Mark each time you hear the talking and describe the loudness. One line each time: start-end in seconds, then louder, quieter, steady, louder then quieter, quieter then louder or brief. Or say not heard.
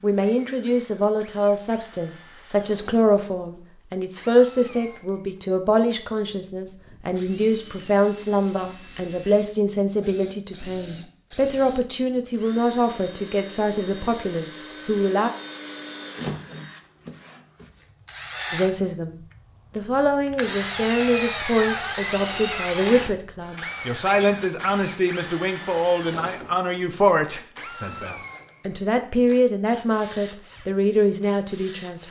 0.0-15.3 steady
18.5-32.0 steady.